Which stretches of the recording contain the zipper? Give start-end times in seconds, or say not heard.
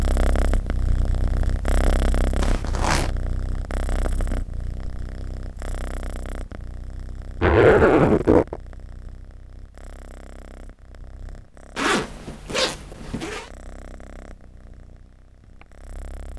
2.4-3.1, 7.4-8.6, 11.8-13.4.